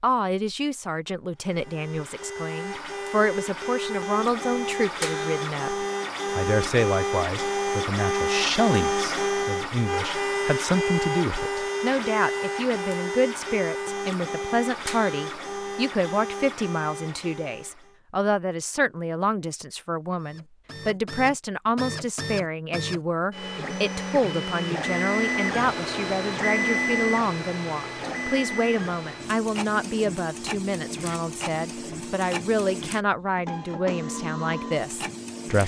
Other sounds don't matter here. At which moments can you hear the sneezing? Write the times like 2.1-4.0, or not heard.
not heard.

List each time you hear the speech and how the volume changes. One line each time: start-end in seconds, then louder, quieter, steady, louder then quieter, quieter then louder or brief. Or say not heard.
0.0-35.6 steady.